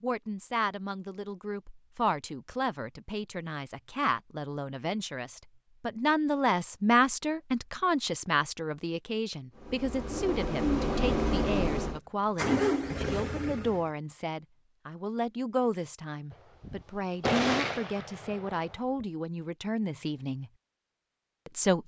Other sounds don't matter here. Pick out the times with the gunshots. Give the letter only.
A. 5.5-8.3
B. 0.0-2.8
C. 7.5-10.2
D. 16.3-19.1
D.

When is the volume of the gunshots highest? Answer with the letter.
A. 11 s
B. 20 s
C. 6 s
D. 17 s
D.